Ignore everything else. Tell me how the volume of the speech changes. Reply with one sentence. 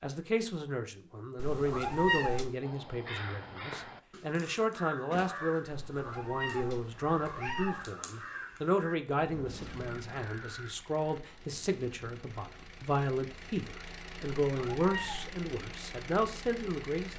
The volume of the speech stays about the same.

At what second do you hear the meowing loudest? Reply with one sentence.
The loudest moment of the meowing is at 2 seconds.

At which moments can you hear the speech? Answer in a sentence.
You can hear the speech from 0.0 to 17.1 s.